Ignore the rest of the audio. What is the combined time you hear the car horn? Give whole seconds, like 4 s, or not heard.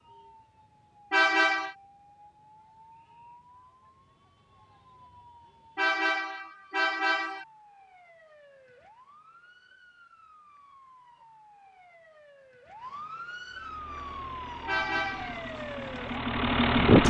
3 s.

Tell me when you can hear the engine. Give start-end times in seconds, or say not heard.
13.6-17.0.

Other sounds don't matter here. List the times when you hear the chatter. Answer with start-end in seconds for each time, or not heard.
not heard.